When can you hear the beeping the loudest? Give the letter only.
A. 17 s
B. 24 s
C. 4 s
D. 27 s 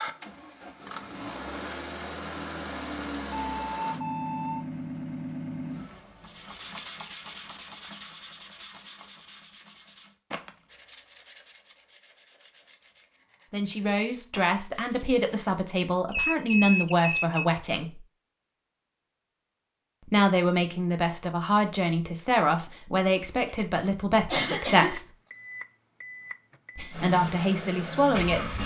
A.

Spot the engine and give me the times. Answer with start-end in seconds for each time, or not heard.
0.0-6.8, 26.9-28.6.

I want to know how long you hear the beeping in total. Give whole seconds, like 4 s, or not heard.
5 s.